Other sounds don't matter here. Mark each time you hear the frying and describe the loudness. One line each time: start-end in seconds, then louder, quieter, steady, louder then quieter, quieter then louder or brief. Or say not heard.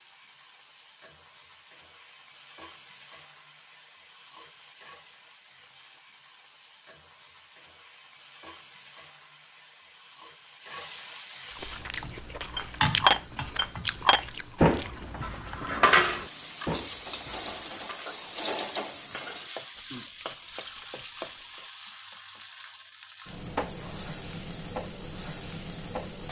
0.0-26.2 louder.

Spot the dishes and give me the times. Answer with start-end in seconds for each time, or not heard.
12.6-18.1.